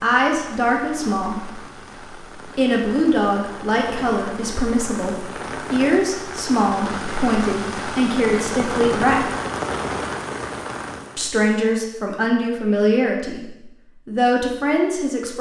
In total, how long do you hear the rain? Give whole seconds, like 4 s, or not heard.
11 s.